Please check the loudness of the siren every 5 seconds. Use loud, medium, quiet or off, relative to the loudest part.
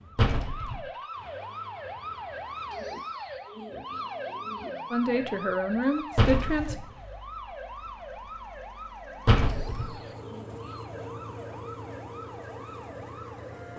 loud, loud, medium.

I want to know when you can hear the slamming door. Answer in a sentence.
The slamming door can be heard from 0.1 to 0.8 s, from 6.2 to 6.8 s and from 9.2 to 9.9 s.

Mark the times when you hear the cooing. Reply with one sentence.
You can hear the cooing from 2.7 to 4.7 s and from 9.4 to 10.8 s.